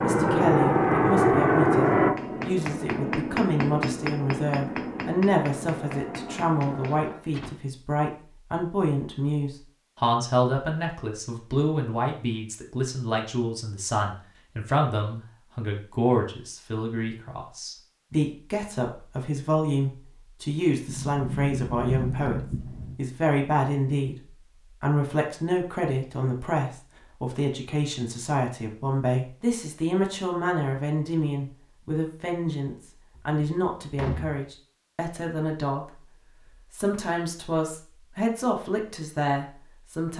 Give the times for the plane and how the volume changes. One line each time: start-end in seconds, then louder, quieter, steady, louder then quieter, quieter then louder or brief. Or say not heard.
0.0-7.2 quieter.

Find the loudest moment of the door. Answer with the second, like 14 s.
22 s.